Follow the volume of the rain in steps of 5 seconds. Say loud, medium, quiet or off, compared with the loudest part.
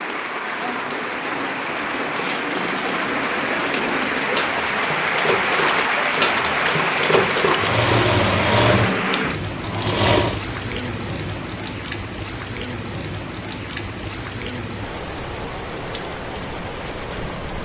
loud, loud, medium, medium.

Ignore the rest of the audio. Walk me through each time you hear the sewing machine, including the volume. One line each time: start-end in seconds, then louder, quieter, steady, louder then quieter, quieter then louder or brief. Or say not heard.
0.0-10.4 louder.